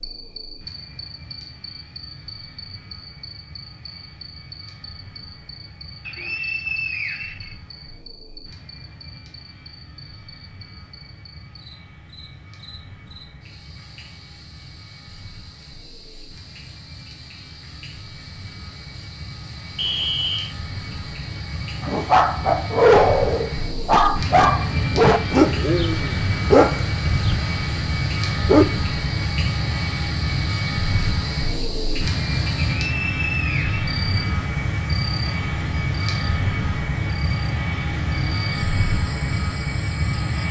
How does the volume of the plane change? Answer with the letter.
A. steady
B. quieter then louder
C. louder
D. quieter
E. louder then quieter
C.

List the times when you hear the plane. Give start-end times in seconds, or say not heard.
0.0-40.4.